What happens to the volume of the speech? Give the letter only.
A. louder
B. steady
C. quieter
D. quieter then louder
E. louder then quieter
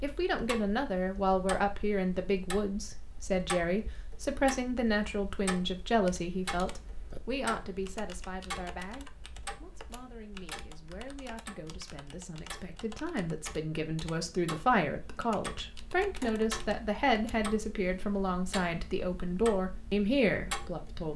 D.